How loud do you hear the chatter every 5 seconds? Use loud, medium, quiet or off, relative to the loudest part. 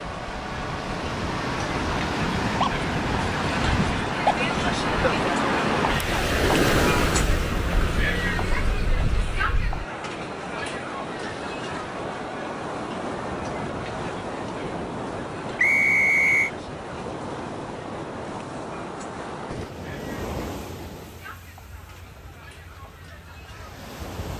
loud, loud, medium, quiet, quiet.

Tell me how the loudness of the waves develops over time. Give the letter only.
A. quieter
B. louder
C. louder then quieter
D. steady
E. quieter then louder
A.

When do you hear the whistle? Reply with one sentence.
You can hear the whistle from 15.6 to 16.5 s.